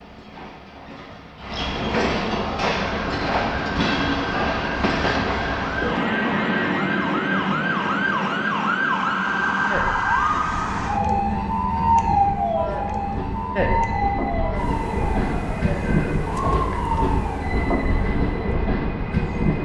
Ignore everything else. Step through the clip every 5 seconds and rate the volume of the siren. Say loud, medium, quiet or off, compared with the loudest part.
medium, loud, loud, medium.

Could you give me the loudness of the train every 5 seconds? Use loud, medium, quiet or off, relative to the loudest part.
loud, loud, medium, loud.